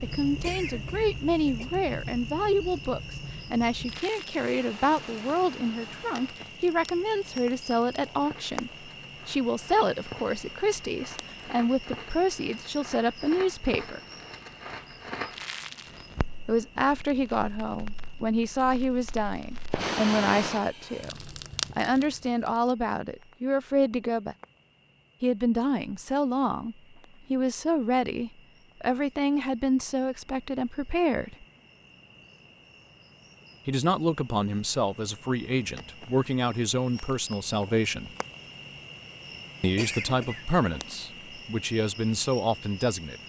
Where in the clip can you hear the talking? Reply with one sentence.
You can hear the talking from 0.0 to 14.0 s, from 16.4 to 21.1 s, from 21.8 to 24.4 s, from 25.2 to 31.4 s, from 33.6 to 38.1 s and from 39.6 to 43.1 s.